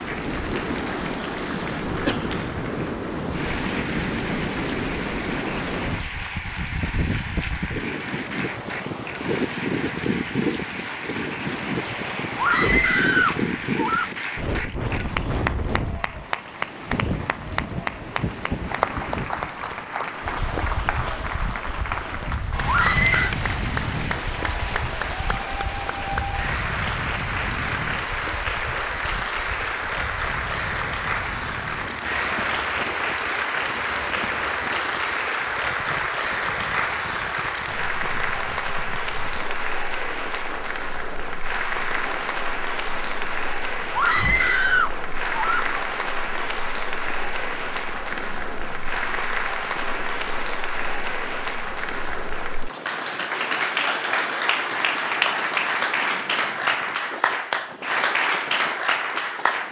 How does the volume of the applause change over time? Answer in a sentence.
The volume of the applause goes up.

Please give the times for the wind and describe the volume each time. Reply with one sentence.
You can hear the wind from 0.0 to 59.6 s, getting quieter.